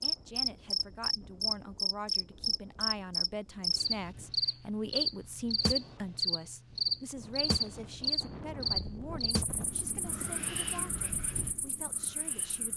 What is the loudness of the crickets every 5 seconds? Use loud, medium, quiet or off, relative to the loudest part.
loud, loud, quiet.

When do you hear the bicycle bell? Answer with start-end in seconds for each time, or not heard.
not heard.